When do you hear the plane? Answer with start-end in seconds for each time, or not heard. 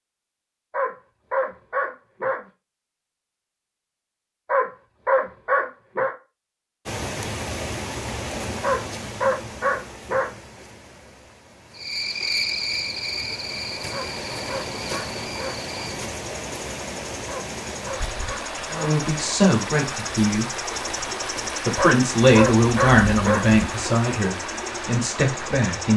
not heard.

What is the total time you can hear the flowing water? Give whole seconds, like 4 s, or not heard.
19 s.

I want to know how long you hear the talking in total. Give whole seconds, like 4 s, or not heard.
6 s.